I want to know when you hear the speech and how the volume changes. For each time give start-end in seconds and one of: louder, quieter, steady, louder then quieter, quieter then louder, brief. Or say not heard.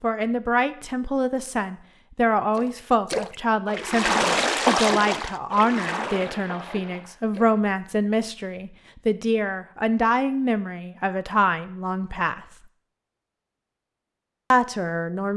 0.0-12.4 steady
14.5-15.3 brief.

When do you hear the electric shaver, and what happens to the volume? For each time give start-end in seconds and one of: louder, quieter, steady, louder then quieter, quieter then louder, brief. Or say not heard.
not heard.